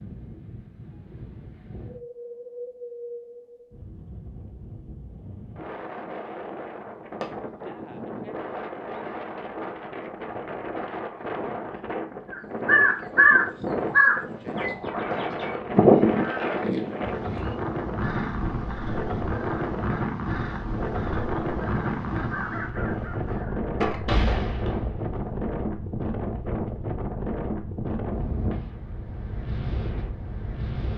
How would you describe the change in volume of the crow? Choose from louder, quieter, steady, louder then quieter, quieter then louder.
quieter then louder.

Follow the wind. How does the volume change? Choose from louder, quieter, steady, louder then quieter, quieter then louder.
louder.